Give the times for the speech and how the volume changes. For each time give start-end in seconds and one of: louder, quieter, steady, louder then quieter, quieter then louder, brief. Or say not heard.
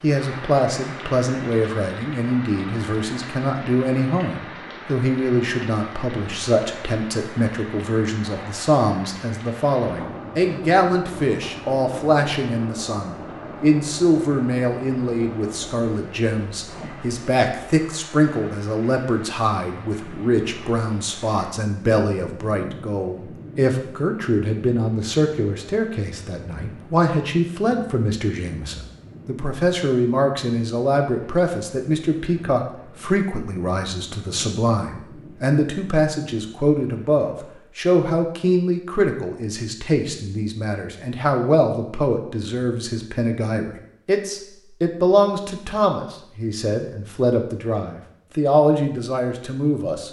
0.0-50.0 steady.